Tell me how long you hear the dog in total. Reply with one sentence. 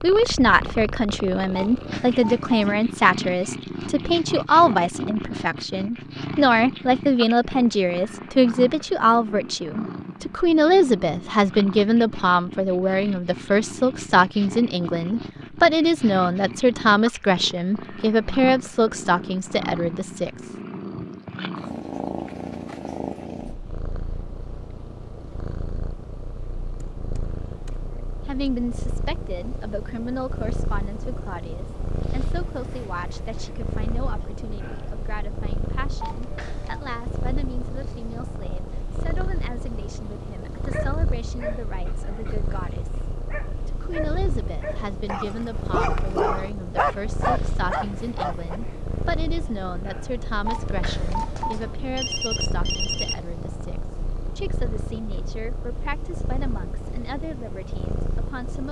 The dog can be heard for 8 seconds in total.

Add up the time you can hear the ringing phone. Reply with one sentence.
You can hear the ringing phone for 5 seconds altogether.